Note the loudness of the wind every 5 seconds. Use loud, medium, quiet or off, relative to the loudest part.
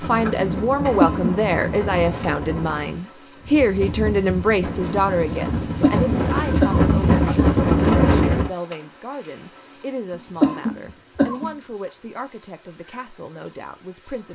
medium, loud, off.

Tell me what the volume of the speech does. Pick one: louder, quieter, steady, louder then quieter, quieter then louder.
quieter.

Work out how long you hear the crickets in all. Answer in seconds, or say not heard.
14 s.